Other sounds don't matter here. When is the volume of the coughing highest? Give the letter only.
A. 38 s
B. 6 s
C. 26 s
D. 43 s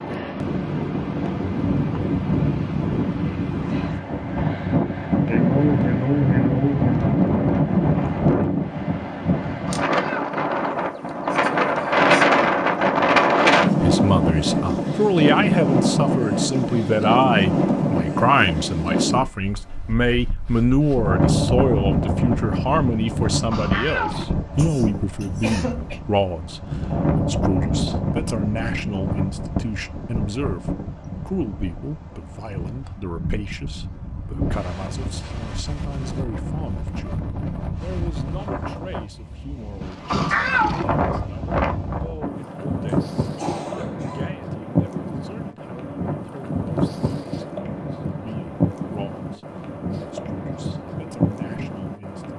B.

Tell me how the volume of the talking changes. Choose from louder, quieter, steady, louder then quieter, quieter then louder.
quieter.